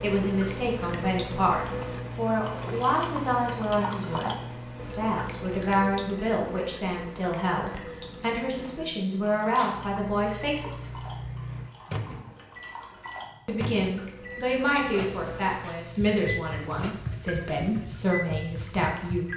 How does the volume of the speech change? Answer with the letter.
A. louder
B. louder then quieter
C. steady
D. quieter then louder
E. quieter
C.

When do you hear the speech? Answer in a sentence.
You can hear the speech from 0.0 to 11.0 s and from 13.4 to 19.3 s.